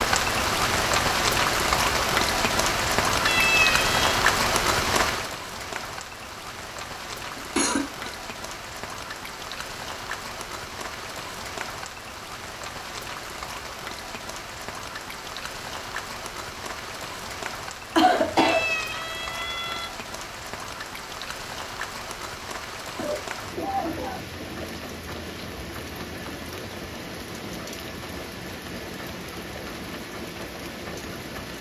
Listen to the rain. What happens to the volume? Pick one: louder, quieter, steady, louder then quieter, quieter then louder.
quieter.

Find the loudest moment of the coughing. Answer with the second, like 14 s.
18 s.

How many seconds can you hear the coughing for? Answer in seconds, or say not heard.
3 s.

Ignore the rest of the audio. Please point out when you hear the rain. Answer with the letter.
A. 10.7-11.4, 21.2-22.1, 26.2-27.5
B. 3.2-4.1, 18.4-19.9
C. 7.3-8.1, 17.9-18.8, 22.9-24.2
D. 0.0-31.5
D.